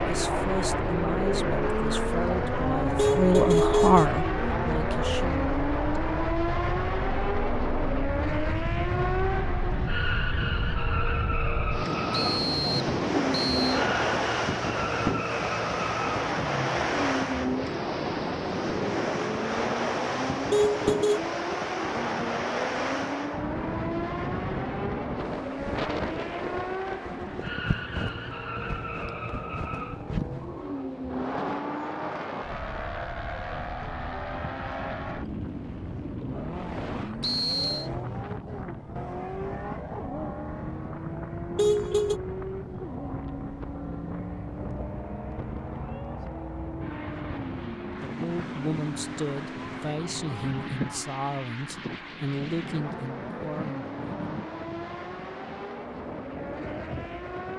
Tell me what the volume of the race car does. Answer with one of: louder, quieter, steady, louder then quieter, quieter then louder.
quieter.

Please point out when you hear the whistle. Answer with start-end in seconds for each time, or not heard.
12.1-13.8, 37.2-37.9.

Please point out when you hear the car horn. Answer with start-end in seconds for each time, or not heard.
3.0-4.1, 20.5-21.2, 41.5-42.2.